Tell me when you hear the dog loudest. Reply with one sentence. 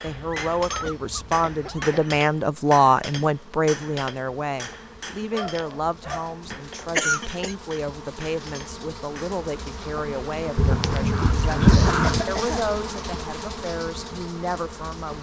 The loudest moment of the dog is at 12 seconds.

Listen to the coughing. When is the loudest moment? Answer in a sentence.
The volume of the coughing peaks at 7 seconds.